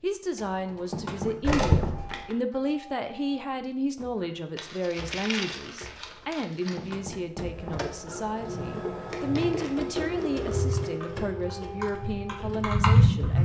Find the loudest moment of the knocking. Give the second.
1 s.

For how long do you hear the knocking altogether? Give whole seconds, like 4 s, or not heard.
2 s.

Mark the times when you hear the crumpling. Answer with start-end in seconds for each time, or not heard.
1.4-2.4, 4.5-7.0, 9.1-10.8.